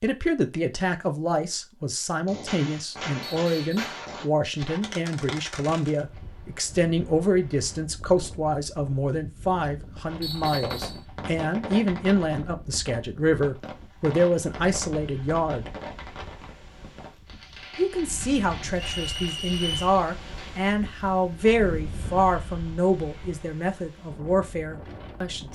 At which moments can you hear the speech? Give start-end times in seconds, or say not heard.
0.0-15.8, 17.8-25.5.